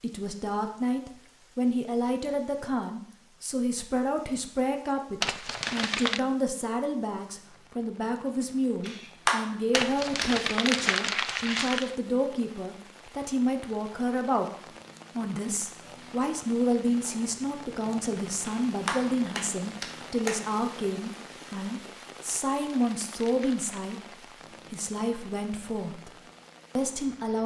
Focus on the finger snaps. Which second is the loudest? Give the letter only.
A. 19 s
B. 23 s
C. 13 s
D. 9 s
D.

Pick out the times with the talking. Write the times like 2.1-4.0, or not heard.
0.0-14.5, 15.2-24.0, 24.7-26.1, 26.8-27.4.